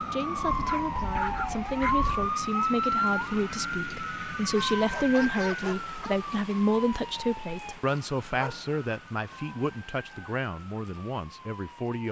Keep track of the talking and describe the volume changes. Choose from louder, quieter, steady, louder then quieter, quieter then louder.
louder then quieter.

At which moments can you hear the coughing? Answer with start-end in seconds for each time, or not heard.
not heard.